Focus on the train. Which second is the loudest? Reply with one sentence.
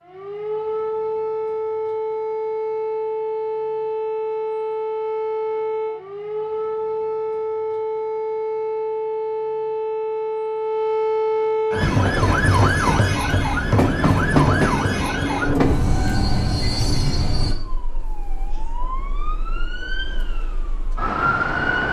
The volume of the train peaks at 14 seconds.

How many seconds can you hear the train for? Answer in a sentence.
You can hear the train for 6 seconds altogether.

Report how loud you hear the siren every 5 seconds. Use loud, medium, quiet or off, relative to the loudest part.
loud, loud, loud, medium, loud.